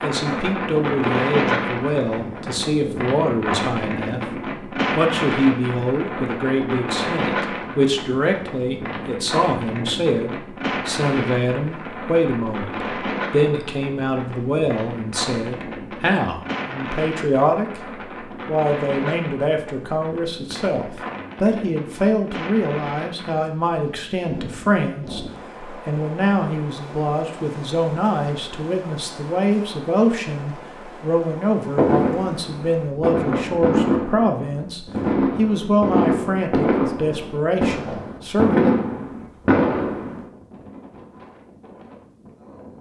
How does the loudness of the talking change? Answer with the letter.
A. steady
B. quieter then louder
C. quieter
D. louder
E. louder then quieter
A.